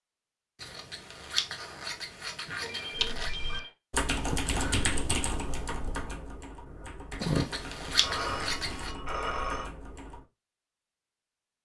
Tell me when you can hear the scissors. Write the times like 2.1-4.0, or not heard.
0.6-3.3, 7.2-8.9.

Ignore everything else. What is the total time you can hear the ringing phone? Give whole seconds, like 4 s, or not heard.
3 s.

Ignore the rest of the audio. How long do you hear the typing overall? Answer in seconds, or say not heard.
7 s.